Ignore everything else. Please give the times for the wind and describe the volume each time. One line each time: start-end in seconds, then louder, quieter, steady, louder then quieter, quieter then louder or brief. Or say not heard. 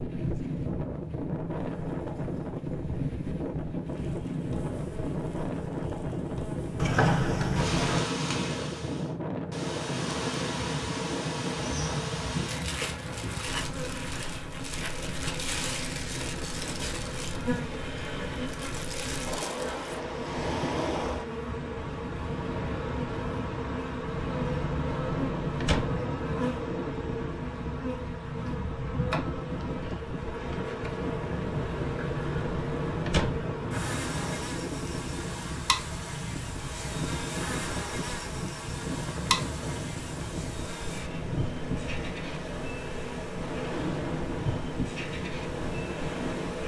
0.0-46.6 steady.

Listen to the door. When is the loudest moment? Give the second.
7 s.